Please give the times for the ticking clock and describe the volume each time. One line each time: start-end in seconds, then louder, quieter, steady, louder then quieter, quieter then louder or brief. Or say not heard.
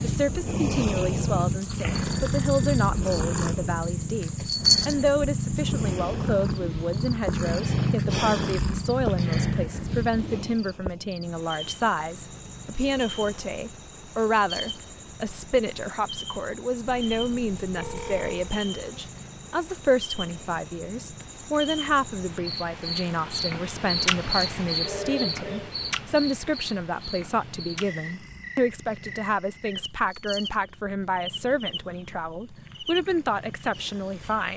not heard.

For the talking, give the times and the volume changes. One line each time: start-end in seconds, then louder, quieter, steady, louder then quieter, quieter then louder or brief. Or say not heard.
0.0-34.5 steady.